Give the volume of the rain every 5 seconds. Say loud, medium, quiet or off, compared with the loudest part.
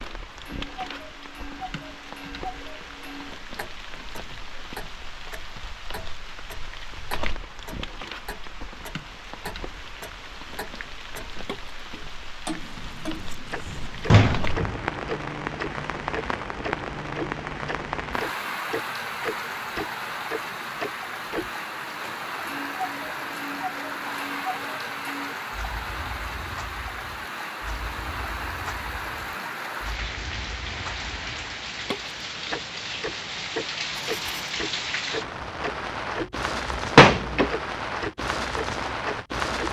medium, medium, medium, loud, loud, loud, loud, loud.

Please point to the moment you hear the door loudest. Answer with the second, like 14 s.
37 s.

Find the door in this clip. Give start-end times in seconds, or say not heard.
14.1-14.8, 36.8-37.5.